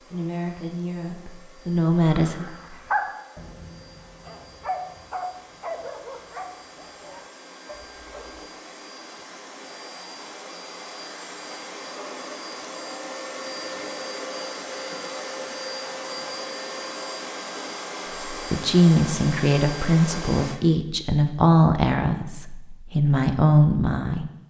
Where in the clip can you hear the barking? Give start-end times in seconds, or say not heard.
2.1-8.4.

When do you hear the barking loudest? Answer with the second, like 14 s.
3 s.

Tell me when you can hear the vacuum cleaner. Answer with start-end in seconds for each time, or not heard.
0.0-20.6.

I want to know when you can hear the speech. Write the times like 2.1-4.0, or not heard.
0.1-2.5, 18.3-24.3.